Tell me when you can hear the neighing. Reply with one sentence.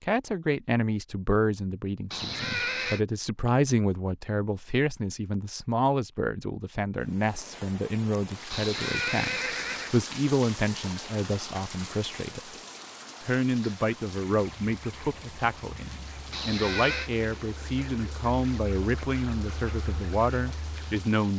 You can hear the neighing from 2.1 to 3.0 s, from 8.5 to 10.0 s and from 16.3 to 17.1 s.